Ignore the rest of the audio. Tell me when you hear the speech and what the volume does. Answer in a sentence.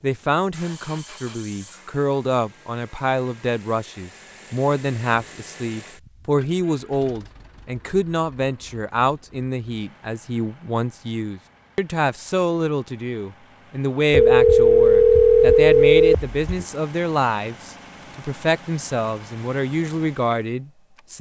You can hear the speech from 0.0 to 21.1 s, at a steady volume.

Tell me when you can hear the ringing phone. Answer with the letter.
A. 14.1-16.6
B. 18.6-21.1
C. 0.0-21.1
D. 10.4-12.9
A.